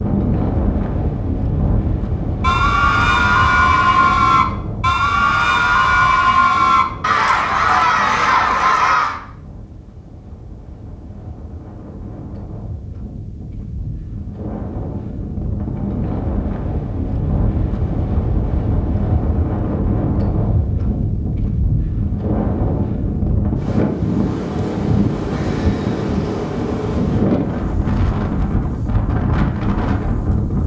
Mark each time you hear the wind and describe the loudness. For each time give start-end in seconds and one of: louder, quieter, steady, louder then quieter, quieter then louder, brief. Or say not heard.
0.0-30.6 quieter then louder.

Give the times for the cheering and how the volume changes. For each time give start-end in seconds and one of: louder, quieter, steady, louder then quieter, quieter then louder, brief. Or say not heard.
2.4-9.2 steady.